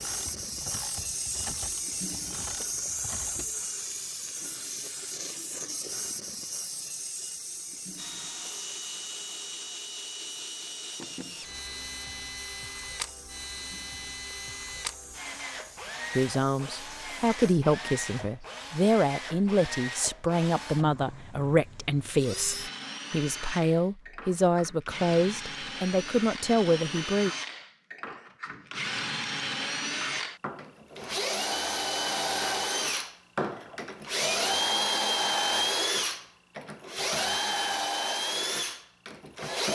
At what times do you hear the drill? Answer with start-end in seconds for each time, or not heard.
8.0-39.7.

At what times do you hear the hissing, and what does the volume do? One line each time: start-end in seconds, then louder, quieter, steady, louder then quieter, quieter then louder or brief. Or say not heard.
0.0-17.6 quieter.